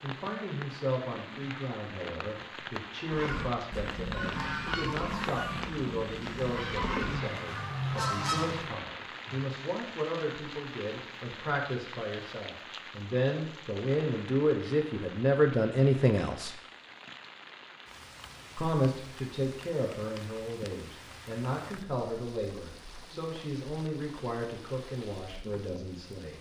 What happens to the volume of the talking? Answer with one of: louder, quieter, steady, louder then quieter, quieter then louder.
louder then quieter.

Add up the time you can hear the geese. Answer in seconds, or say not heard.
6 s.